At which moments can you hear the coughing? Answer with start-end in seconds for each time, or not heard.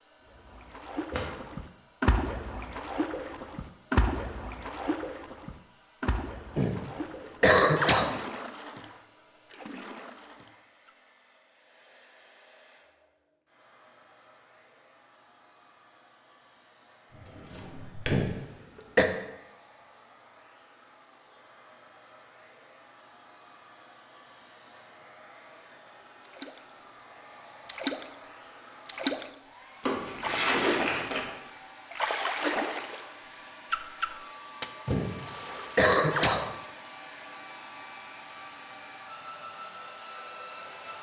6.5-8.2, 18.1-19.1, 34.9-36.5.